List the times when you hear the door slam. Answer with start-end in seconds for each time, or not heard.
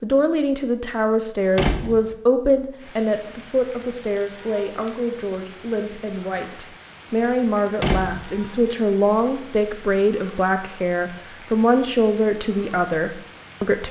1.6-2.1, 7.8-8.4.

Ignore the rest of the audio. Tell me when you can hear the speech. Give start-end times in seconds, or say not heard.
0.0-13.8.